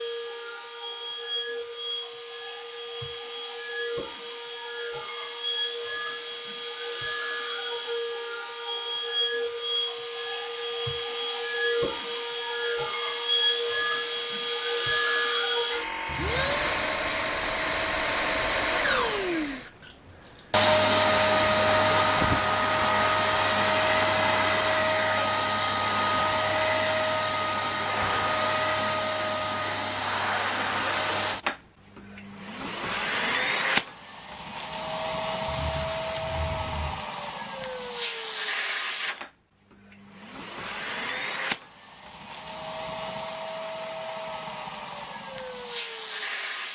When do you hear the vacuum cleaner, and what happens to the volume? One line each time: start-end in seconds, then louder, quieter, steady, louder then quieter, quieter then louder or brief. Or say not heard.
0.0-46.7 louder then quieter.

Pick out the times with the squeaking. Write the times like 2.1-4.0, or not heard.
16.1-16.8, 35.5-37.0.